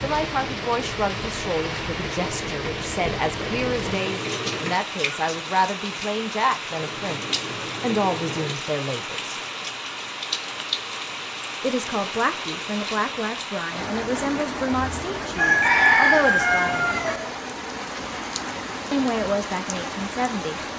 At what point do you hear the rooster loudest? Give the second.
16 s.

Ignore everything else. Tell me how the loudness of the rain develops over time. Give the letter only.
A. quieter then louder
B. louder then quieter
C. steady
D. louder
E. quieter
C.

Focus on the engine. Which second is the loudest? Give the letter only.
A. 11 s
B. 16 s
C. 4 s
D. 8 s
C.